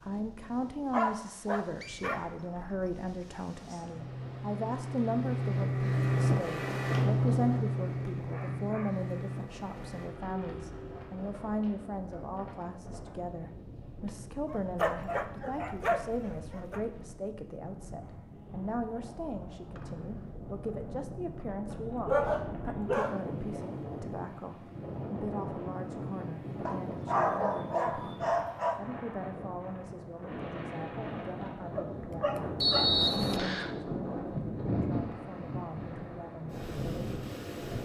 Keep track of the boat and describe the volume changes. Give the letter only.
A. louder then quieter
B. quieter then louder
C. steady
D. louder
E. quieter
A.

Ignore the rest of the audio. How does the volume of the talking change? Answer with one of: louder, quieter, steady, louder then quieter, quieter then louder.
quieter.